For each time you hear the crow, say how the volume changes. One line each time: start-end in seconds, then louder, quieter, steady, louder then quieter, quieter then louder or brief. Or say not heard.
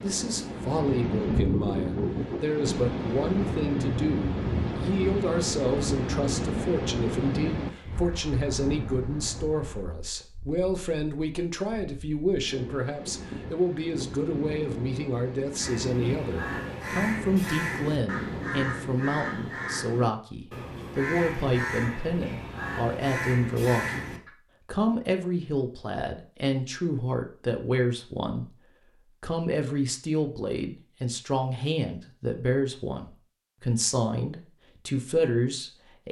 15.6-24.3 steady.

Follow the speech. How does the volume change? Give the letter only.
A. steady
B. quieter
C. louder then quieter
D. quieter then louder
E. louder
A.